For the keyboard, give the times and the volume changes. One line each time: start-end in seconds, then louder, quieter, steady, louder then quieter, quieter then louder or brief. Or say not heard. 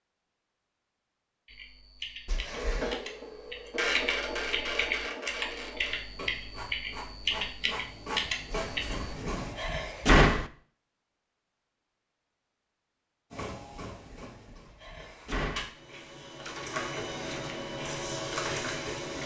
1.4-9.2 louder.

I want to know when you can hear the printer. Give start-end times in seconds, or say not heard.
2.5-9.6, 13.3-19.2.